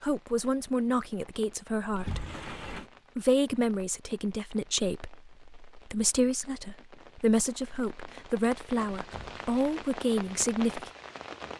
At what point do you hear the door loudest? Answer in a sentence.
The volume of the door peaks at 2 seconds.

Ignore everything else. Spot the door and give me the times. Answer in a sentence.
The door can be heard from 1.9 to 2.9 s and from 9.0 to 9.7 s.